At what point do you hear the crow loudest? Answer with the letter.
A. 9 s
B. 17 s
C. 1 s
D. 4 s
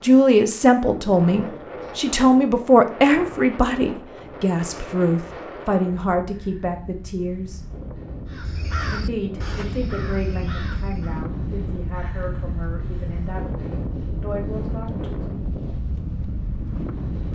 A.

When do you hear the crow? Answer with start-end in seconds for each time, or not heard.
8.2-11.2.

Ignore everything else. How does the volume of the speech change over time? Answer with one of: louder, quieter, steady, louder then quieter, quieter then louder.
quieter.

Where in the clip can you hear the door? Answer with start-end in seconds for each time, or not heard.
not heard.